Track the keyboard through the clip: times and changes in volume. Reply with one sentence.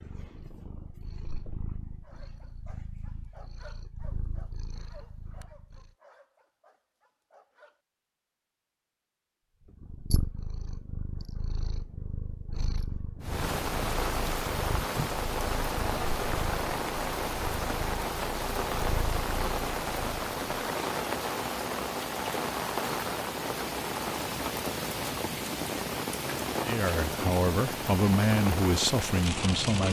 You can't hear the keyboard here.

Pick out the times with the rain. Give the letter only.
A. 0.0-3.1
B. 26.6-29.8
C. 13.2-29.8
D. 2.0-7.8
C.